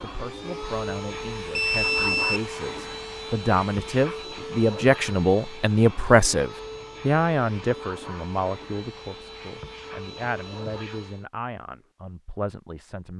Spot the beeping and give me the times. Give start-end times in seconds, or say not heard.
1.5-2.4.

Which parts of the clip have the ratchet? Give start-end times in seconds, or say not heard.
not heard.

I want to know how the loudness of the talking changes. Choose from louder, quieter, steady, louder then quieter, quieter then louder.
louder then quieter.